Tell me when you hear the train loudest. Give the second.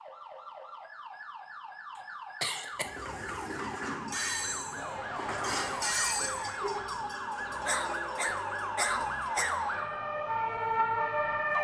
6 s.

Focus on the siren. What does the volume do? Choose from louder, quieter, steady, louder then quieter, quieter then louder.
louder.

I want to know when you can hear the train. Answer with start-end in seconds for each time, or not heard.
2.8-9.4.